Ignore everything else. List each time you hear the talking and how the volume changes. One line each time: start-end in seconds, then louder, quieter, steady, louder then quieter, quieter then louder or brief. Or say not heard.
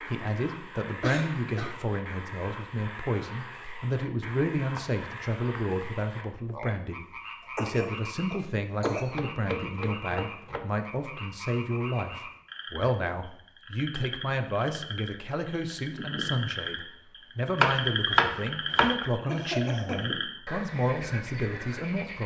0.0-22.2 steady.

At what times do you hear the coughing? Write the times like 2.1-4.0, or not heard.
1.0-1.8, 7.5-9.1, 19.2-20.1.